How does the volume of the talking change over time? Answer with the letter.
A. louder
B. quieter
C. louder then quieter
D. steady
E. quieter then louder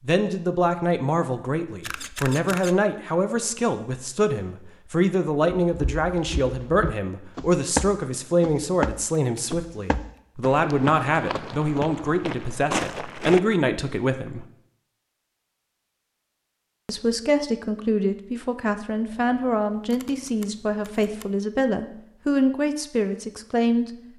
D.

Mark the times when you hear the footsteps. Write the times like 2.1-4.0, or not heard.
5.7-13.4.